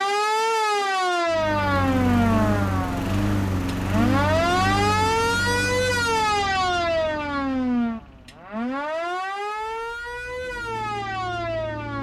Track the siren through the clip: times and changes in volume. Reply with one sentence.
You can hear the siren from 0.0 to 11.9 s, getting quieter.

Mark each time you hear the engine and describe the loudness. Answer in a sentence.
The engine can be heard from 1.3 to 11.9 s, getting quieter then louder.